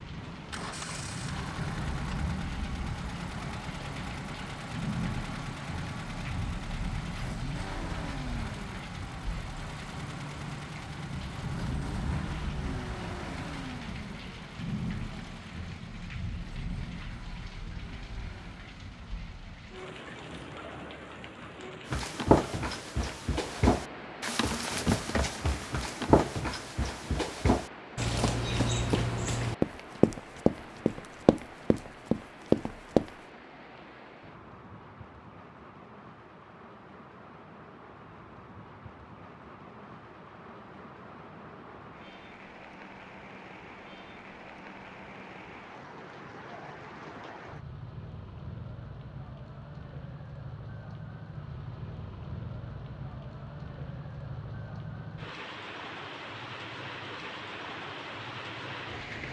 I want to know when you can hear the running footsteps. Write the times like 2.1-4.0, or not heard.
21.9-33.1.